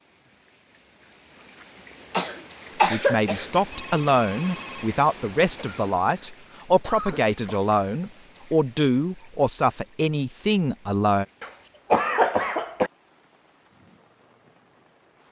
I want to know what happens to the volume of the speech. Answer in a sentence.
The loudness of the speech stays about the same.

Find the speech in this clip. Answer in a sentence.
The speech can be heard from 2.9 to 11.2 s.